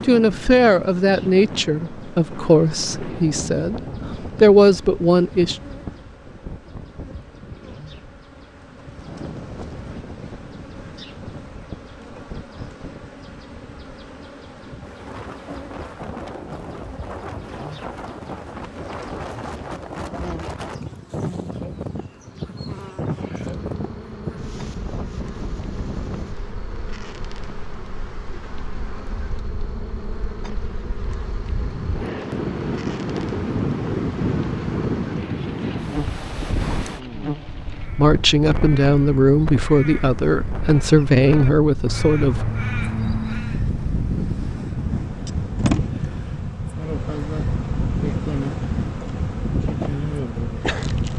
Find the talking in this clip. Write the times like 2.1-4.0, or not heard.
0.1-5.5, 38.0-42.5.